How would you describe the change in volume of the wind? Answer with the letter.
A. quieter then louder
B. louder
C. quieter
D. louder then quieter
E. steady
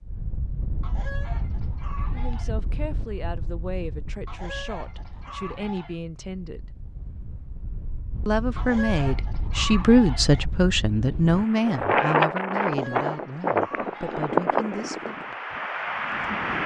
A.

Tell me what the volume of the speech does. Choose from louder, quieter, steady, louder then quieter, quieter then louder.
louder then quieter.